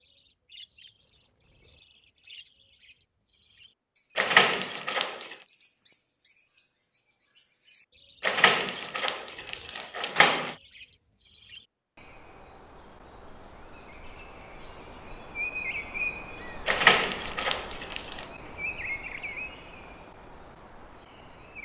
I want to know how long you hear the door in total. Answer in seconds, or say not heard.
5 s.